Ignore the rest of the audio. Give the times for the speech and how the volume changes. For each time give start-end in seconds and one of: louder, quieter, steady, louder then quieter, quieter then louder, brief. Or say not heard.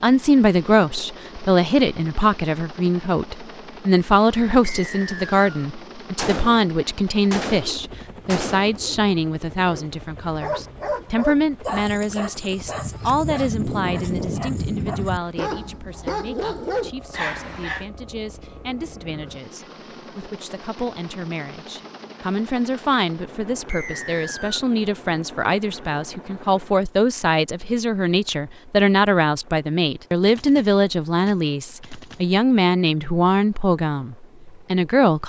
0.0-35.2 quieter then louder.